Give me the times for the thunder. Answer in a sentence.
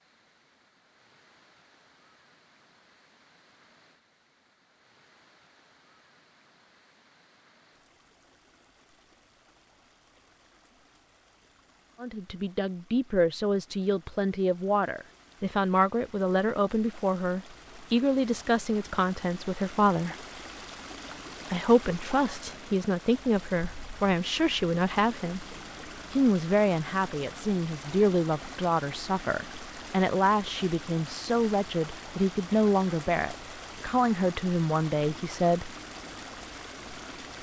You can't hear the thunder here.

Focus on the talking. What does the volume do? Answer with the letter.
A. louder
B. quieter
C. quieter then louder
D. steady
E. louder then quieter
D.